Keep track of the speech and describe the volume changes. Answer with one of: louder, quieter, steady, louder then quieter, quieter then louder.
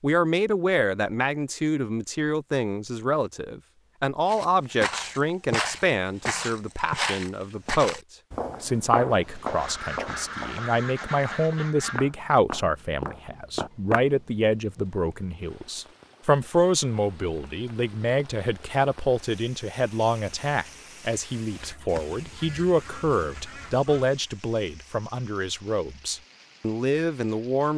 steady.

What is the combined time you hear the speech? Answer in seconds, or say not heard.
27 s.